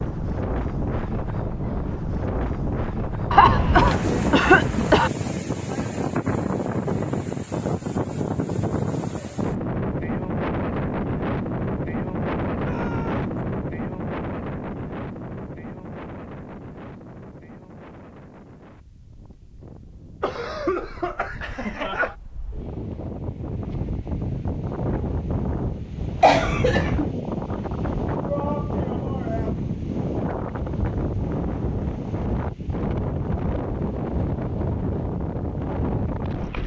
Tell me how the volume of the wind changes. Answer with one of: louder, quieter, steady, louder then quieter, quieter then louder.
quieter then louder.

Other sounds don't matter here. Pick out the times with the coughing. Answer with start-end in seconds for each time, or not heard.
3.3-5.1, 20.2-22.1, 26.2-27.1.